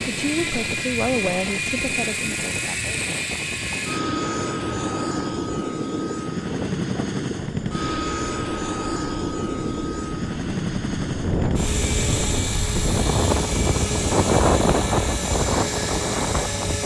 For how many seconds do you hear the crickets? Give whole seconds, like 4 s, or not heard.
not heard.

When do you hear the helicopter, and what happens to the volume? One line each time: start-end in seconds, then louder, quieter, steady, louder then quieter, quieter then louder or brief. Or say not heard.
0.0-16.8 steady.